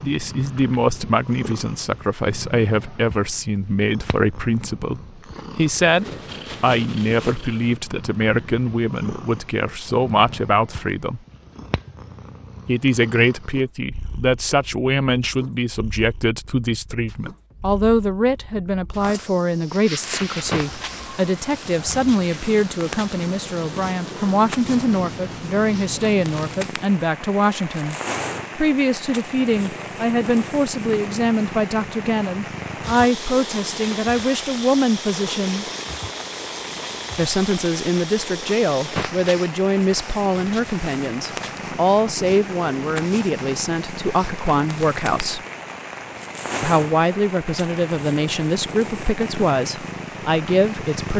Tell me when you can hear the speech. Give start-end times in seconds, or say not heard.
0.0-11.2, 12.7-27.9, 28.6-35.6, 37.1-45.4, 46.6-51.1.